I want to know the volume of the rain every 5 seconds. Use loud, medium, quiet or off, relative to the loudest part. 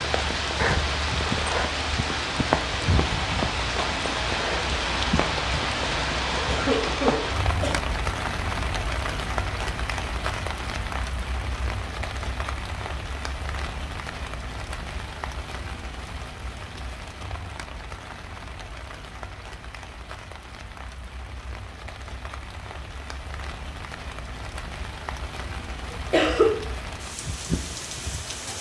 loud, loud, medium, quiet, quiet, medium.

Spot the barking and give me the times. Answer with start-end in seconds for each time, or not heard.
not heard.